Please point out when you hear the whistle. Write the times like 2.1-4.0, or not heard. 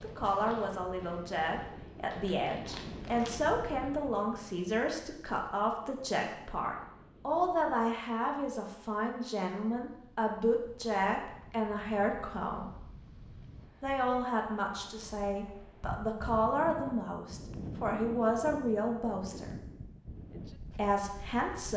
not heard.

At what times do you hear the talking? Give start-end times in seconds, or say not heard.
0.0-12.7, 13.8-19.6, 20.8-21.7.